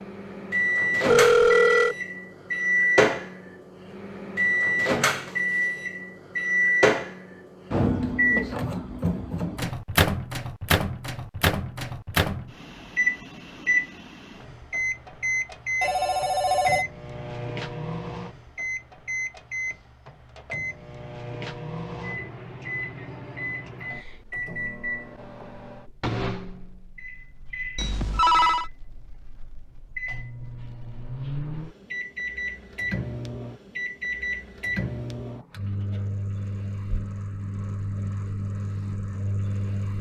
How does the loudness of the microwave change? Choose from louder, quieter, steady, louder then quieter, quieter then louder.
quieter.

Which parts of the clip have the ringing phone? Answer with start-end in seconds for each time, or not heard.
1.1-1.9, 15.8-16.9, 27.8-28.7.